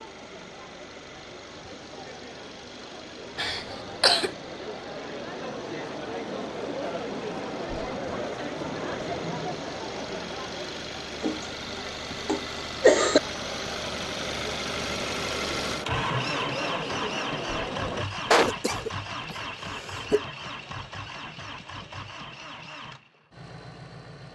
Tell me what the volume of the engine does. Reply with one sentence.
The volume of the engine goes up, then down.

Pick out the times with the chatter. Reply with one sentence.
The chatter can be heard from 0.0 to 18.1 s.